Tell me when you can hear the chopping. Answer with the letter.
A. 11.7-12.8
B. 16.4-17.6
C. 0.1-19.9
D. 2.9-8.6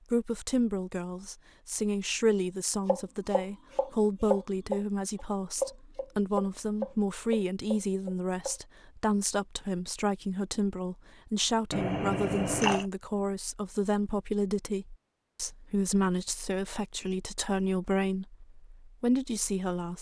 D.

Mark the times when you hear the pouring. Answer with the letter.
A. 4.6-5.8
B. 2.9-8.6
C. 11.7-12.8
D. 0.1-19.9
C.